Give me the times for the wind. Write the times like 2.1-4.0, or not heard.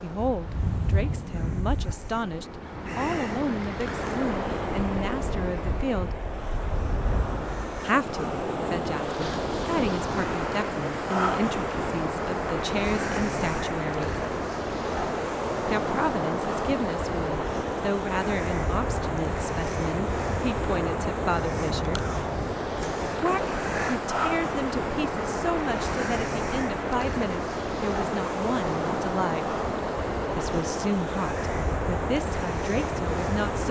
0.0-33.6.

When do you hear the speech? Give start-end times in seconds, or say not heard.
0.0-6.2, 7.8-14.2, 15.7-22.1, 23.2-29.4, 30.4-33.6.